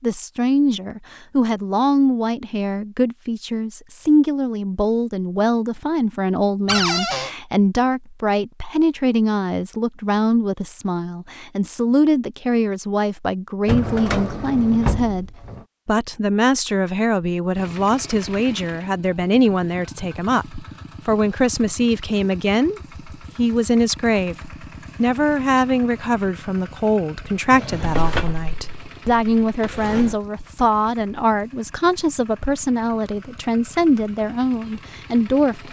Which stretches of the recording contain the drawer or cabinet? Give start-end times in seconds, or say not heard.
6.7-7.3, 13.7-15.6, 27.5-30.1.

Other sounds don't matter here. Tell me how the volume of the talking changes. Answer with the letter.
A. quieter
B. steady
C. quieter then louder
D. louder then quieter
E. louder
B.